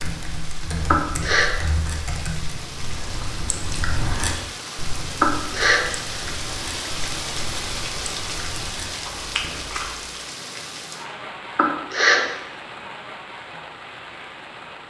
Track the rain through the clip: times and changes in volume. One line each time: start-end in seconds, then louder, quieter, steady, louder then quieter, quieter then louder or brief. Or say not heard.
0.0-14.8 louder then quieter.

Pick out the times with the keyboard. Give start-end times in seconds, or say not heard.
0.0-2.6.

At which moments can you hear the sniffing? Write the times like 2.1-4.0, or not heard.
0.9-1.5, 5.2-5.8, 11.6-12.2.